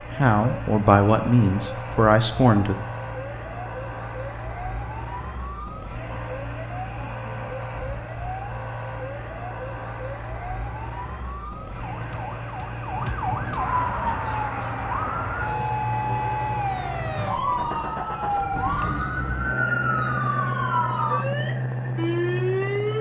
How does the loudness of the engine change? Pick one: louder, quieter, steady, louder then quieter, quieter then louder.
louder.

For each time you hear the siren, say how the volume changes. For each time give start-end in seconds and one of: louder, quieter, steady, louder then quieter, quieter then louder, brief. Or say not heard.
0.0-22.9 louder.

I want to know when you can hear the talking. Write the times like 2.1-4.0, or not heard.
0.1-2.8.